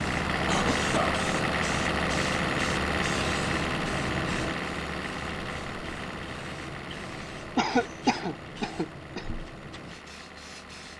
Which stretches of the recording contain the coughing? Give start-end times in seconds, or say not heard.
0.5-1.2, 7.5-9.2.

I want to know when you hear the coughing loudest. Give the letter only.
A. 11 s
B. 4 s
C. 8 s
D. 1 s
C.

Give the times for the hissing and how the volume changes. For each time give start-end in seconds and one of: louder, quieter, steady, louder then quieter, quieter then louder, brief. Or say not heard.
0.0-10.9 quieter.